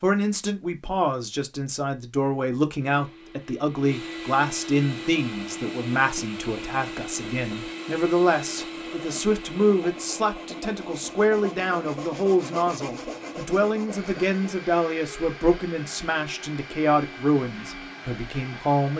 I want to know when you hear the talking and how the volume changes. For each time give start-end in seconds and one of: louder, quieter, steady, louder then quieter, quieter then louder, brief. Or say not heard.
0.0-18.9 steady.